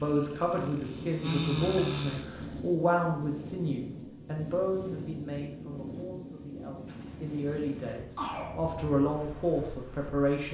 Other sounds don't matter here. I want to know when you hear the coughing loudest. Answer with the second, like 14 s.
8 s.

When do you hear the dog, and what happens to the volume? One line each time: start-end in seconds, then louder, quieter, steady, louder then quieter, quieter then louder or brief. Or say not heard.
not heard.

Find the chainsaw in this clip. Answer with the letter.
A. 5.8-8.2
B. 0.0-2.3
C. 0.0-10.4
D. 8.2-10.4
B.